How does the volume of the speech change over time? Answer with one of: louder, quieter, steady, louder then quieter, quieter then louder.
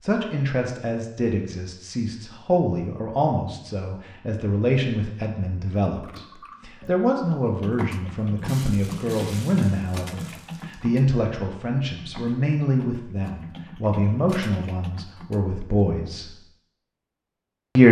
steady.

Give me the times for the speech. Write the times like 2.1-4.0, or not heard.
0.0-16.4.